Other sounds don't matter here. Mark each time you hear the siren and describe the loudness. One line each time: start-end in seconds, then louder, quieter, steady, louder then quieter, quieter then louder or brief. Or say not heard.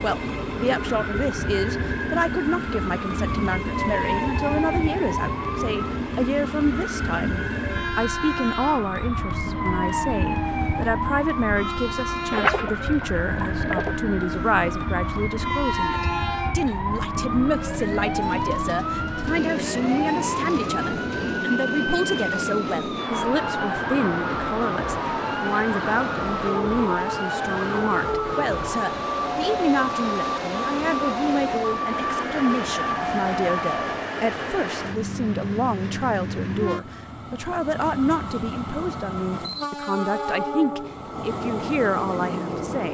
0.2-33.8 steady.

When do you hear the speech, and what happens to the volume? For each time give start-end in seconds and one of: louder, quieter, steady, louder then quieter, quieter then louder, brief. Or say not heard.
0.0-42.9 steady.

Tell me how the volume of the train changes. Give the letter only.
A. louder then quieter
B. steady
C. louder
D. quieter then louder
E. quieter
B.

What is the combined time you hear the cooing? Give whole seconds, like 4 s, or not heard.
2 s.